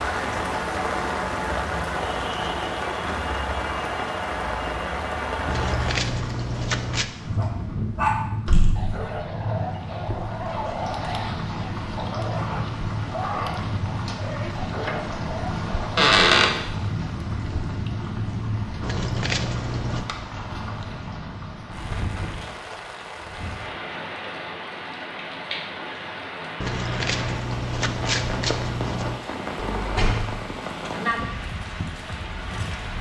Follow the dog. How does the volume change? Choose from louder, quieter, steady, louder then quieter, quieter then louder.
quieter.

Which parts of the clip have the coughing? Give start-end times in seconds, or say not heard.
not heard.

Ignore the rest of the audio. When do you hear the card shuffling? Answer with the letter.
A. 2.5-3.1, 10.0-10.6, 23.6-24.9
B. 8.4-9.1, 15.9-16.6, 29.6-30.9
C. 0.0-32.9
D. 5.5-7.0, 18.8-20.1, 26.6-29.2
D.